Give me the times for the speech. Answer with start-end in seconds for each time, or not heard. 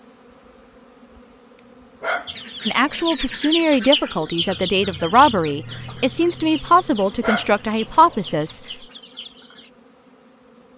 2.6-8.6.